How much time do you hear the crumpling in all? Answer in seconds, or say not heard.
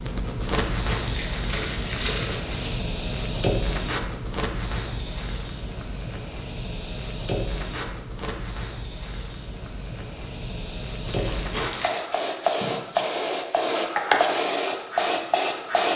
3 s.